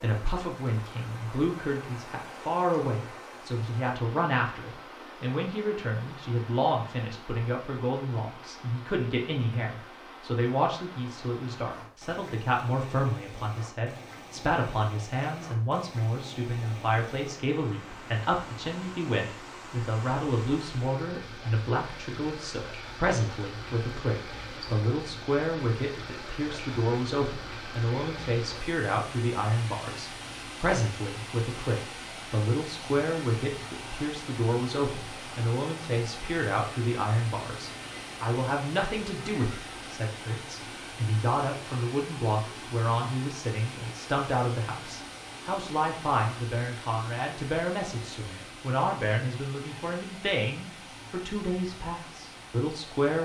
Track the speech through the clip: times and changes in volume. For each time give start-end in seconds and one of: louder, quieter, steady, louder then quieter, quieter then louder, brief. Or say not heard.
0.0-53.1 steady.